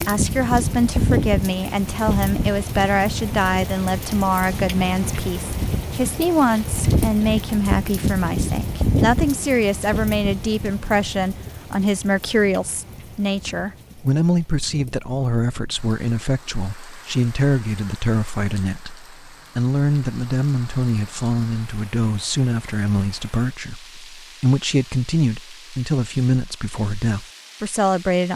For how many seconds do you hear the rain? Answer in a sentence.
The rain can be heard for 28 seconds in total.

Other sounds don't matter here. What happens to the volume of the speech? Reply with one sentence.
The loudness of the speech stays about the same.